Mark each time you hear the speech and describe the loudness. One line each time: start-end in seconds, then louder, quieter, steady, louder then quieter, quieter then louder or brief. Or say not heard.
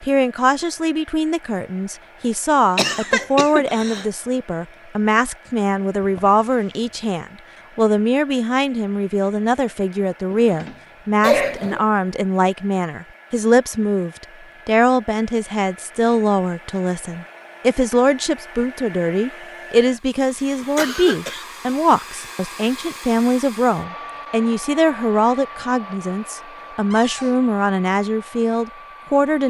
0.0-29.4 steady.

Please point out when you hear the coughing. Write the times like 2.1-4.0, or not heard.
2.8-4.0, 11.2-11.8, 20.6-21.4.